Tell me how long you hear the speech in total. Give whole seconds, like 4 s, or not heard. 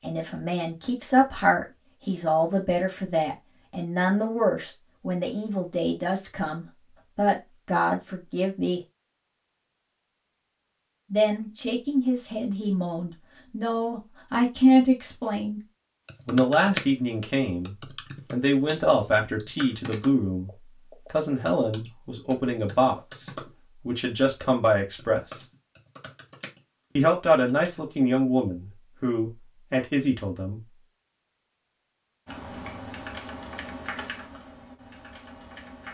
26 s.